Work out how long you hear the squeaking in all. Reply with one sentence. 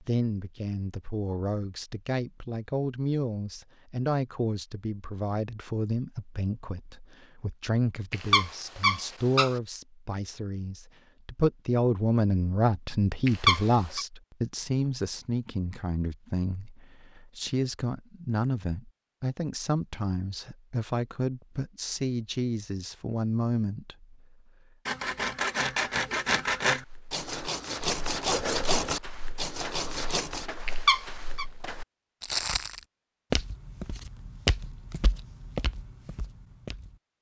You can hear the squeaking for 3 seconds altogether.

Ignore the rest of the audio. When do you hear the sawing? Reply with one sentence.
The sawing can be heard from 24.9 to 30.5 s.